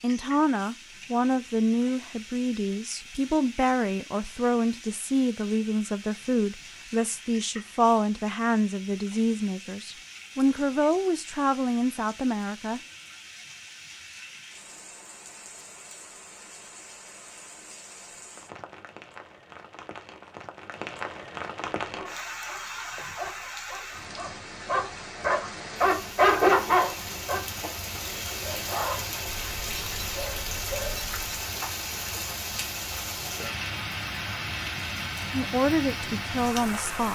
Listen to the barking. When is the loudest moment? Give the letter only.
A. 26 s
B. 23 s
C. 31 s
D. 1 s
A.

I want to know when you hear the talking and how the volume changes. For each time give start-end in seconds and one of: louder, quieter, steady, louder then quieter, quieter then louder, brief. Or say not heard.
0.0-12.8 steady
35.3-37.1 brief.